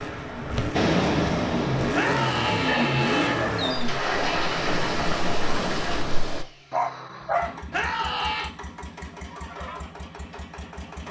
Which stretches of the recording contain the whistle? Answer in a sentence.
The whistle can't be heard in this clip.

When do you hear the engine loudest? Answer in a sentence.
The loudest moment of the engine is at 3 seconds.